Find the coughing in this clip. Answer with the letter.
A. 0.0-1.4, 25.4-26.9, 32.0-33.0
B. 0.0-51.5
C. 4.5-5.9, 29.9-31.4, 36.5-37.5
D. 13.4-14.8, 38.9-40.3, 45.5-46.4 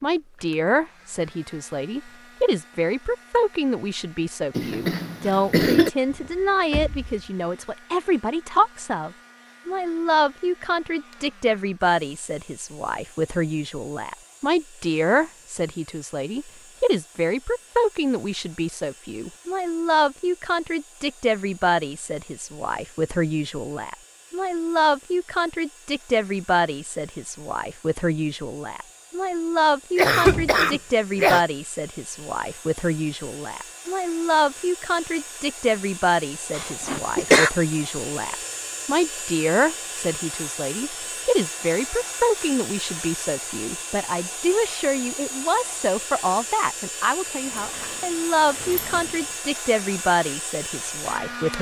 C.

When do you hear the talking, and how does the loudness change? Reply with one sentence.
You can hear the talking from 0.0 to 51.5 s, at a steady volume.